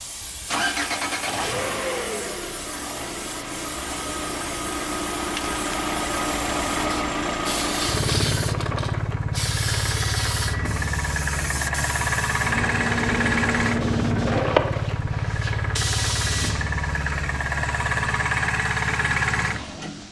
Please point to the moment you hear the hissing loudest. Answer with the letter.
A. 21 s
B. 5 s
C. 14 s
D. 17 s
C.